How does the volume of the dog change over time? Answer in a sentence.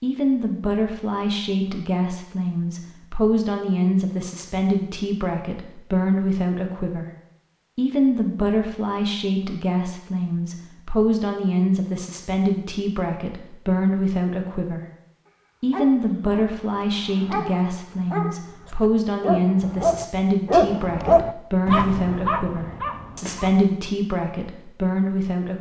The loudness of the dog goes up, then down.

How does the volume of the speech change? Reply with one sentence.
The loudness of the speech stays about the same.